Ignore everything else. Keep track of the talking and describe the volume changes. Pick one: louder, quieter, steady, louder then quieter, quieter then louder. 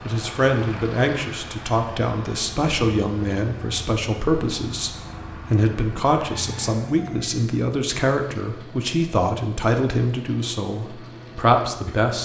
steady.